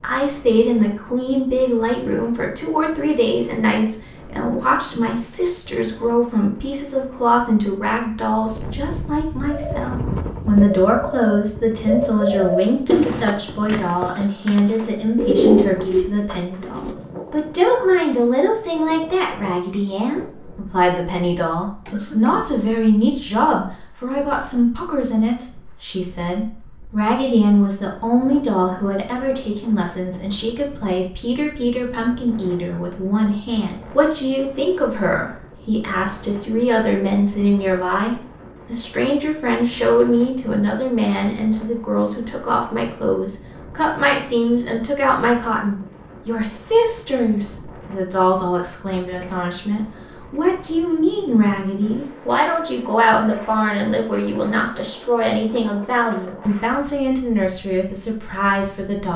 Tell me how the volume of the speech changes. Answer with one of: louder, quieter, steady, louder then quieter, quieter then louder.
steady.